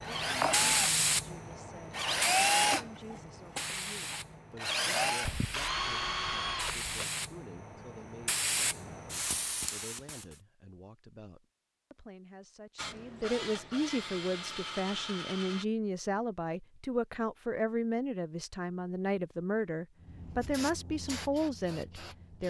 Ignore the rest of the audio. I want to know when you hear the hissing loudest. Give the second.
1 s.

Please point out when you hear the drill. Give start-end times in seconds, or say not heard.
0.0-7.0, 12.8-15.7.